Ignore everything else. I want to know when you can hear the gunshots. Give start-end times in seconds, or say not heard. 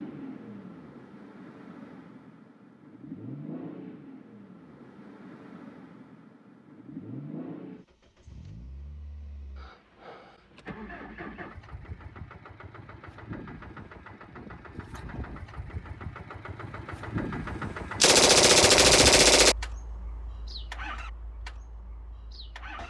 18.0-19.6.